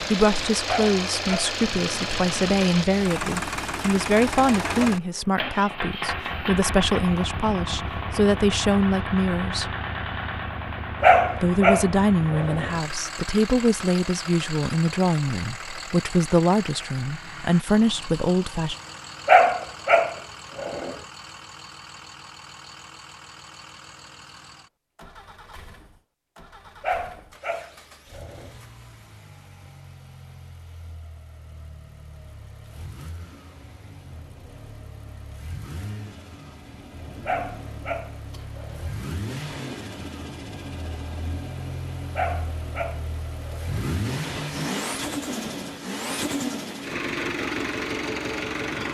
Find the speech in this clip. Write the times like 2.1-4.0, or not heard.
0.0-9.8, 11.3-18.8.